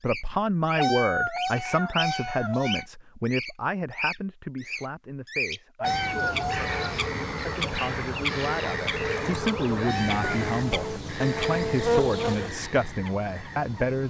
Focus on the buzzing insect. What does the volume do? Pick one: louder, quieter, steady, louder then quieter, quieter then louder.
louder.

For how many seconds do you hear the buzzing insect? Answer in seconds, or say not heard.
6 s.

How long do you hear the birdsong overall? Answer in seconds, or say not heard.
14 s.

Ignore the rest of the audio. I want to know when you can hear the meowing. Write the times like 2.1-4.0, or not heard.
0.8-2.9, 5.8-7.0, 9.8-10.3.